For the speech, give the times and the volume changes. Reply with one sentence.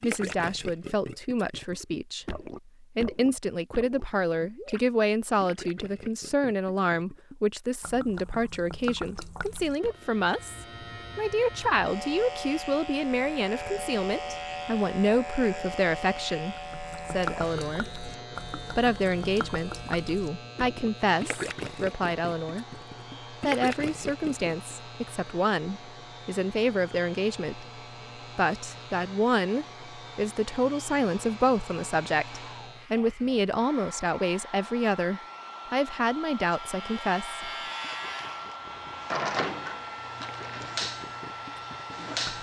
You can hear the speech from 0.0 to 37.5 s, at a steady volume.